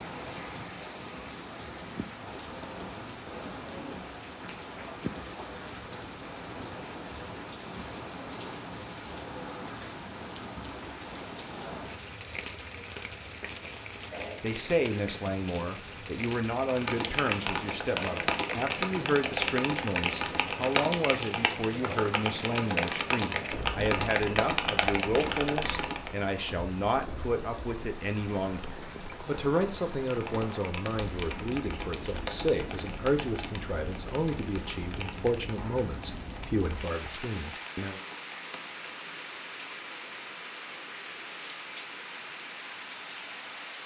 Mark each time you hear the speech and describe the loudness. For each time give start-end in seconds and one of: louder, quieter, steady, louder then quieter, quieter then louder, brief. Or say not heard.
14.4-38.0 steady.